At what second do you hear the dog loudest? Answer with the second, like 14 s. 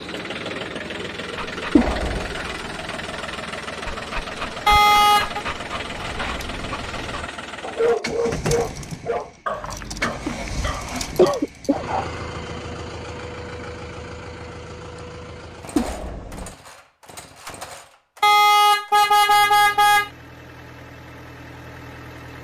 8 s.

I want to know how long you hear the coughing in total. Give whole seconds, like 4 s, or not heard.
3 s.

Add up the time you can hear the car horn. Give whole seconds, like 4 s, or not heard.
3 s.